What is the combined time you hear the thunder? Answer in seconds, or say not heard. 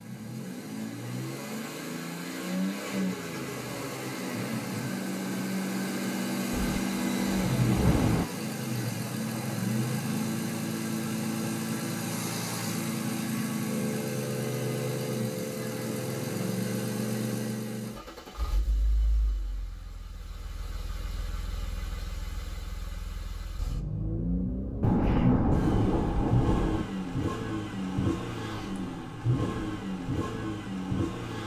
4 s.